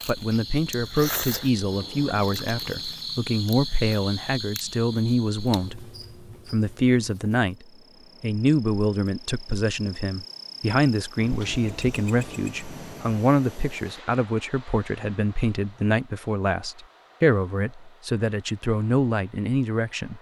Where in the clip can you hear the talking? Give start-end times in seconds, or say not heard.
0.1-5.9, 6.5-20.1.